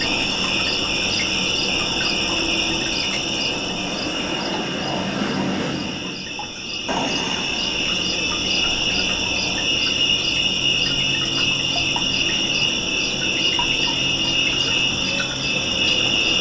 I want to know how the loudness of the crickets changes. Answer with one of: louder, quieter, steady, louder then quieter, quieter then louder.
quieter then louder.